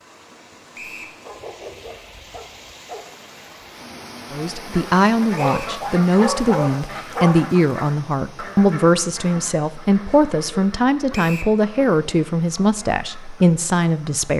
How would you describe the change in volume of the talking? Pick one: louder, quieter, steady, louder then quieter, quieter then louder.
steady.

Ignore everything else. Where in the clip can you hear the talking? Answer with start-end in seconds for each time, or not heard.
4.3-14.3.